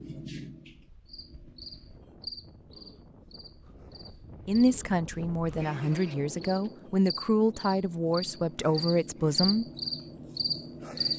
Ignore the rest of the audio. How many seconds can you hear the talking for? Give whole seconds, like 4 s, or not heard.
5 s.